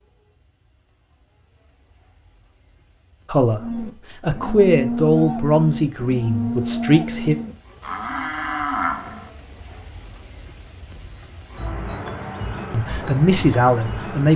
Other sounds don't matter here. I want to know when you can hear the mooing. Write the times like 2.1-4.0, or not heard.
3.6-9.3.